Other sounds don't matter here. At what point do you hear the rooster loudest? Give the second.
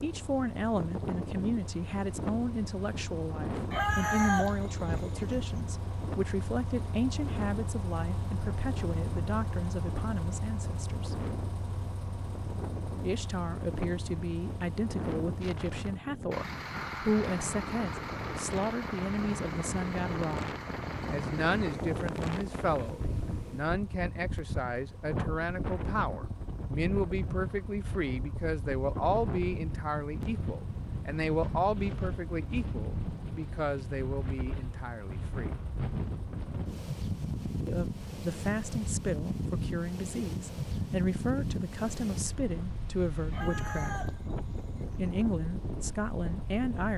4 s.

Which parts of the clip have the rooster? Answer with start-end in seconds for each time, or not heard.
3.7-5.5, 43.3-45.1.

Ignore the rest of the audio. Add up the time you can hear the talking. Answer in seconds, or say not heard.
42 s.